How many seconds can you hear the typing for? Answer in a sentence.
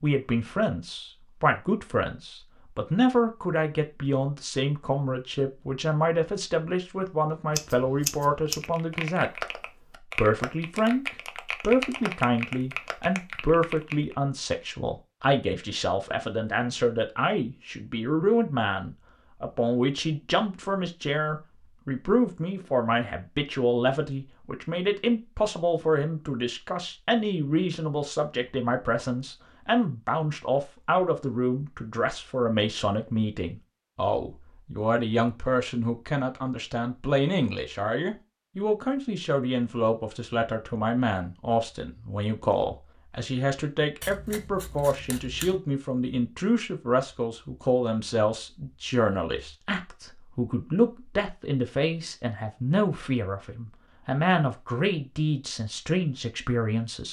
You can hear the typing for 6 seconds altogether.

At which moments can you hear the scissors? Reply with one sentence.
The scissors can be heard from 7.5 to 8.7 s and from 44.0 to 45.6 s.